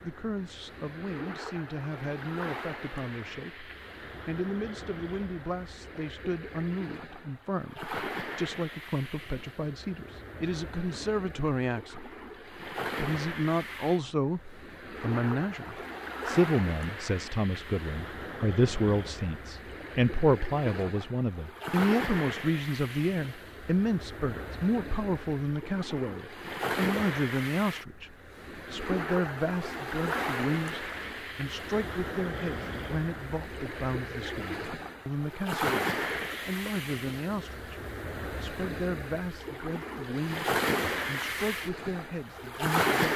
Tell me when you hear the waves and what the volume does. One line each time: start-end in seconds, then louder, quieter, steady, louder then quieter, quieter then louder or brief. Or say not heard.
0.0-43.1 louder.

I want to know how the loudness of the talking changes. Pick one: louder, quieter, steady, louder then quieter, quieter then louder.
louder then quieter.